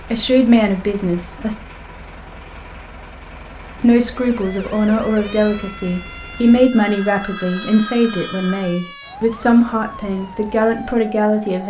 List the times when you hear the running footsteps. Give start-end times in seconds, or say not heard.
not heard.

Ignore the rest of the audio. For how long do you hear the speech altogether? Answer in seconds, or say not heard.
9 s.